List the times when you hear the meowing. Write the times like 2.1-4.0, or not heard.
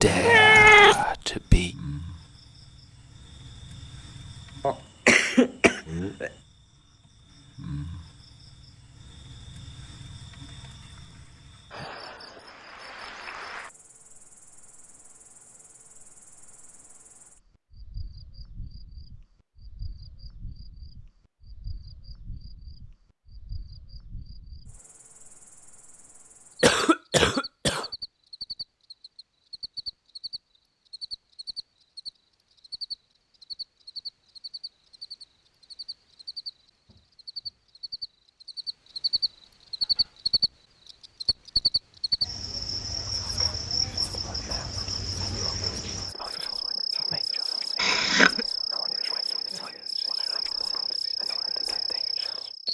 0.2-1.1.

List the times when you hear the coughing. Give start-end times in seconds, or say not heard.
4.6-6.3, 26.6-27.9, 47.8-48.5.